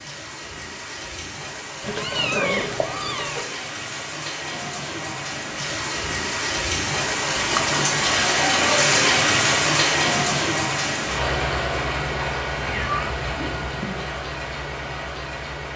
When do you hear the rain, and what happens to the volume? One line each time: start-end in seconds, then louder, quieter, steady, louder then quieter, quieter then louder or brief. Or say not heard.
0.0-15.7 louder then quieter.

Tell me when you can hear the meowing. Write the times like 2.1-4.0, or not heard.
1.8-3.5, 7.4-8.0, 12.6-13.9.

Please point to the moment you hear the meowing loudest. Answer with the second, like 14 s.
2 s.